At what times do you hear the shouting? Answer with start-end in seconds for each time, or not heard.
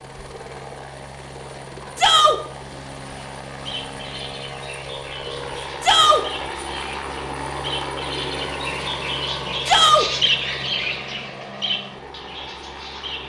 1.9-2.4, 5.8-6.2, 9.7-10.1.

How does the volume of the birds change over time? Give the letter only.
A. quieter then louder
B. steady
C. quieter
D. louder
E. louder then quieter
E.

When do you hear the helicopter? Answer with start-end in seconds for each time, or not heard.
0.0-13.2.